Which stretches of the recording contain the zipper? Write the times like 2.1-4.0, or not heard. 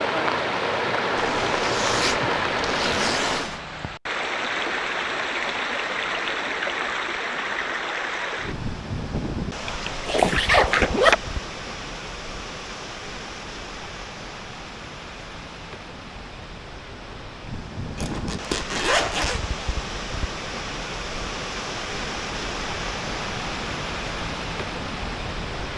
1.1-3.6, 9.7-11.2, 17.9-19.4.